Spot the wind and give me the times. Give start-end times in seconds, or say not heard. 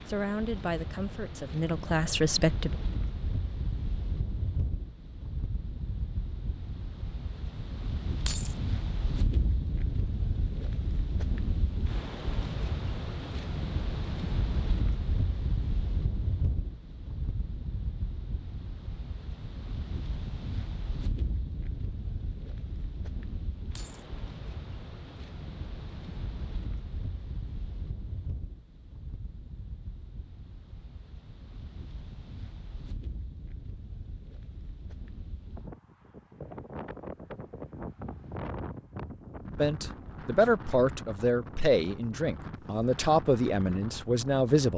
0.0-44.7.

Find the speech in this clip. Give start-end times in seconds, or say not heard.
0.1-2.8, 39.5-44.7.